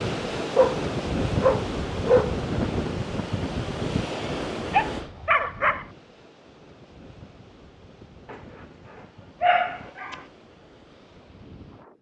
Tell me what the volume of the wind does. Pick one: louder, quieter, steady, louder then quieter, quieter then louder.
quieter.